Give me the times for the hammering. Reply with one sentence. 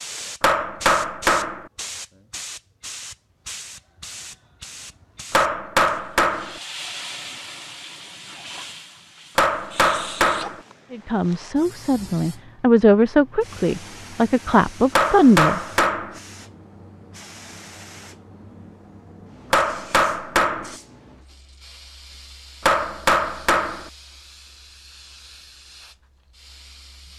You can hear the hammering from 0.4 to 1.6 s, from 5.3 to 6.6 s, from 9.3 to 10.6 s, from 14.9 to 16.2 s, from 19.5 to 20.8 s and from 22.6 to 23.9 s.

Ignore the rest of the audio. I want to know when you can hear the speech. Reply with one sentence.
You can hear the speech from 10.9 to 15.6 s.